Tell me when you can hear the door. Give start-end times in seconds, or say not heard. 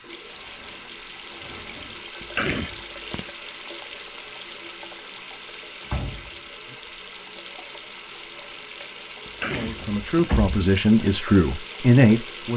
0.2-2.0, 5.8-6.8, 9.7-10.6.